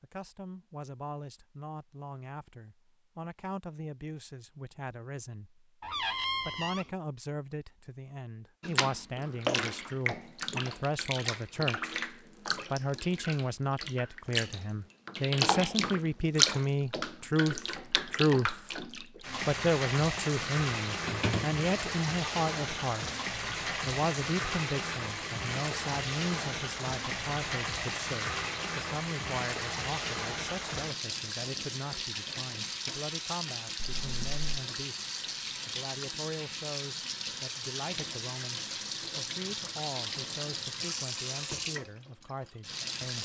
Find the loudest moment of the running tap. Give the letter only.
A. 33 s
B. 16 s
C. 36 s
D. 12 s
B.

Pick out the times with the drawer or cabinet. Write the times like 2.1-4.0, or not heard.
5.8-6.8, 21.0-21.5, 33.8-34.4.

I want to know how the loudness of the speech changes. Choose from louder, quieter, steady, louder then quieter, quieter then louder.
louder then quieter.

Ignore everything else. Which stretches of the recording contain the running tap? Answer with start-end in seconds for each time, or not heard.
8.6-43.2.